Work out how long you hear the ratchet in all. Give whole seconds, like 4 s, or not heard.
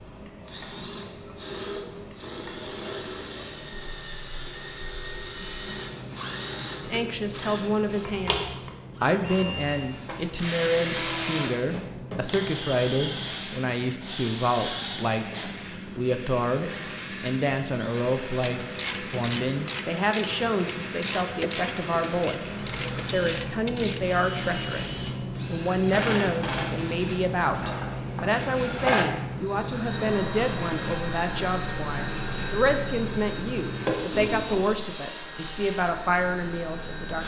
6 s.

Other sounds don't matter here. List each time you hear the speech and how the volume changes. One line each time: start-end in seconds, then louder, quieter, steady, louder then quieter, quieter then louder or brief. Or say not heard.
6.8-37.2 steady.